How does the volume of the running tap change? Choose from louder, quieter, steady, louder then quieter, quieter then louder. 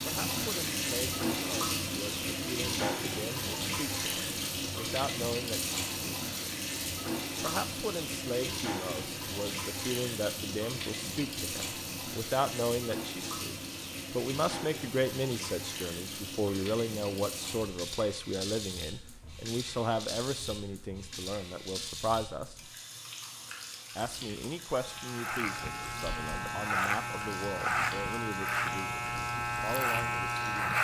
quieter.